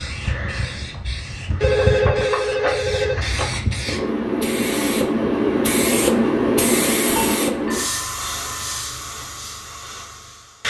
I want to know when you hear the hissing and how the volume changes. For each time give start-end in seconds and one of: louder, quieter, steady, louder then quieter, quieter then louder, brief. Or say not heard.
0.0-10.6 louder then quieter.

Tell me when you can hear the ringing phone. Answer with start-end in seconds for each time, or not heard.
1.6-3.5, 7.0-8.8.